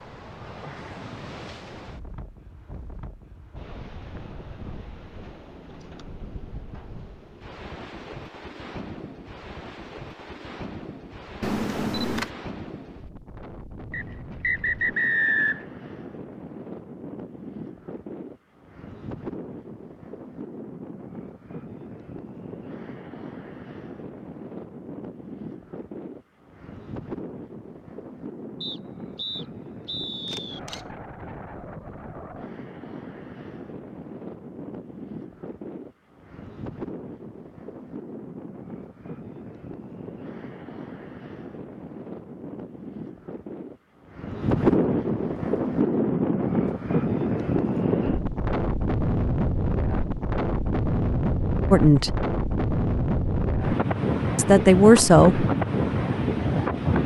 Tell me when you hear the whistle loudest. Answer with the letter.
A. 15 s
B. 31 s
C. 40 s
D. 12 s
A.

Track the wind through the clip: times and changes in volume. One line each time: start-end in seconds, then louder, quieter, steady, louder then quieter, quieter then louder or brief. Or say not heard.
0.0-57.0 louder.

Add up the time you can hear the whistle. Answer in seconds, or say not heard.
4 s.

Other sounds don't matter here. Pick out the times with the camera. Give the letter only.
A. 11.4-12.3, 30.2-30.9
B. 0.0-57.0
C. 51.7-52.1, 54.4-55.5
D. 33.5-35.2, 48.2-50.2
A.